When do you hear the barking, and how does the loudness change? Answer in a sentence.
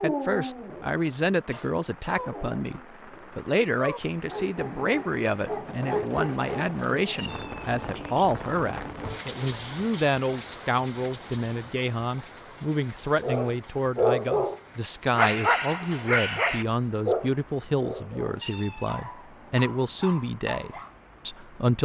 The barking can be heard from 0.0 to 7.2 s, getting louder; and from 13.2 to 20.9 s, getting quieter.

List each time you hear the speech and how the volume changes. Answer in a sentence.
The speech can be heard from 0.0 to 21.7 s, at a steady volume.